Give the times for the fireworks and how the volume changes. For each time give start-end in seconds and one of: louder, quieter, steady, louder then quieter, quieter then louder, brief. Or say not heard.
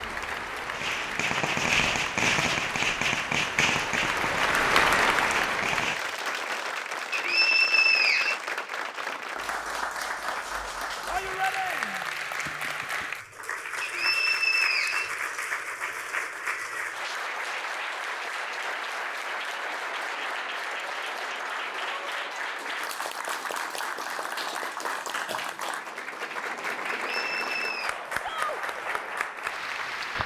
0.7-6.0 quieter.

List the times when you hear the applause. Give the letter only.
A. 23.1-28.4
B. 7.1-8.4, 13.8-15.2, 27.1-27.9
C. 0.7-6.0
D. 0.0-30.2
D.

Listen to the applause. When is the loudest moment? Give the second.
5 s.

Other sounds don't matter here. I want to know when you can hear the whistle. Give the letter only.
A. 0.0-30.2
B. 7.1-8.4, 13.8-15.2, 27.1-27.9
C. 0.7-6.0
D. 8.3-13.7
B.